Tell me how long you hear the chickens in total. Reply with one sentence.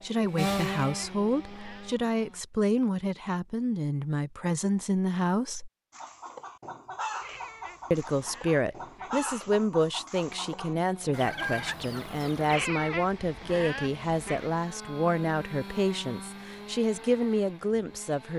The chickens can be heard for 7 seconds in total.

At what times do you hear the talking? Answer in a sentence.
The talking can be heard from 0.0 to 5.7 s and from 7.9 to 18.3 s.